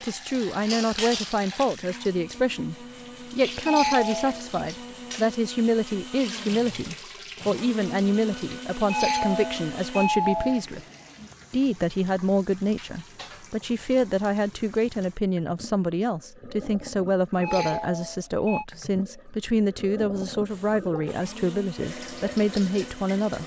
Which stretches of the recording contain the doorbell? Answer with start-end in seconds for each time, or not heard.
3.6-4.5, 8.8-10.7, 17.4-18.6.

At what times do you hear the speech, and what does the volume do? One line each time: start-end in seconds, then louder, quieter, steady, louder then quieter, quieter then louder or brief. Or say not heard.
0.0-10.8 steady
11.5-23.4 steady.